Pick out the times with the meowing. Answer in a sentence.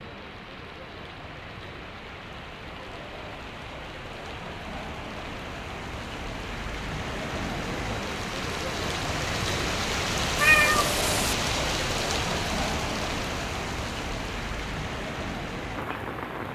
The meowing can be heard from 10.3 to 11.3 s.